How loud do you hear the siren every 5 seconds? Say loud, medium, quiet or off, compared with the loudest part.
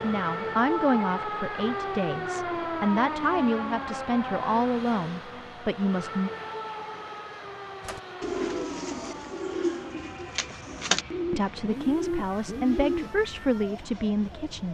loud, medium, quiet.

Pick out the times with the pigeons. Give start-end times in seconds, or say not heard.
7.8-13.1.